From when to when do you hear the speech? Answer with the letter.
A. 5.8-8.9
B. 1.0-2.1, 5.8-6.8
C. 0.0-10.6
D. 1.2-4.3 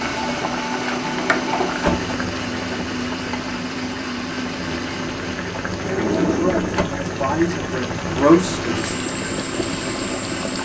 A.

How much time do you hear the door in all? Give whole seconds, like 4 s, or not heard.
2 s.